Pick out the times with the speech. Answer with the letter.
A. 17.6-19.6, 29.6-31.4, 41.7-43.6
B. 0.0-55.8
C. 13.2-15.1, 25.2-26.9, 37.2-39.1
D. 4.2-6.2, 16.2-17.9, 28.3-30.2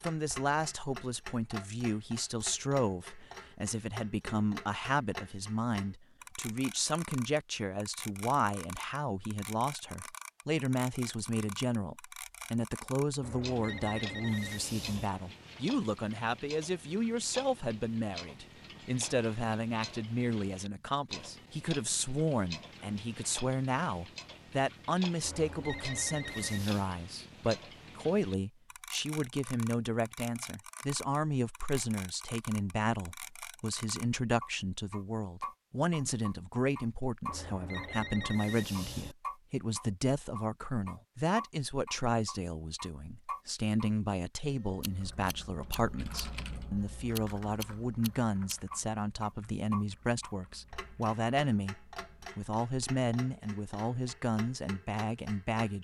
B.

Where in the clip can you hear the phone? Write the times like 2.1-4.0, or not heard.
13.2-15.1, 25.2-26.9, 37.2-39.1.